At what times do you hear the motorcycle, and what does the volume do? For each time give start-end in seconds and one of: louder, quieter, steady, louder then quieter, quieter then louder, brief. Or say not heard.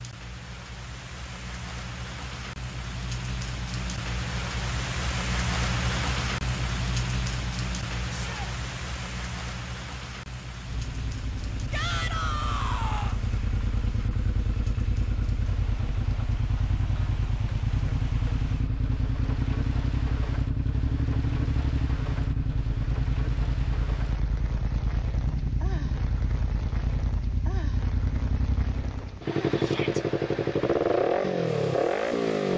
10.7-32.5 louder.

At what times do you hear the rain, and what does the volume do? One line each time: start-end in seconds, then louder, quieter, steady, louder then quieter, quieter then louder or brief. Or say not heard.
0.0-32.5 quieter.